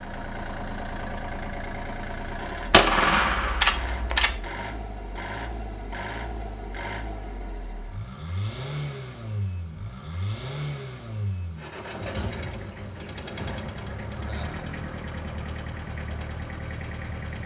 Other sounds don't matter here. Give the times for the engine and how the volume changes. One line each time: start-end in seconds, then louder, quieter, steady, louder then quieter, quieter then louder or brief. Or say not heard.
0.0-17.4 steady.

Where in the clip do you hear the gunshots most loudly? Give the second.
3 s.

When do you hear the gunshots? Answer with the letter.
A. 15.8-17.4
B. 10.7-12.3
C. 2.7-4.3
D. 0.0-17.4
C.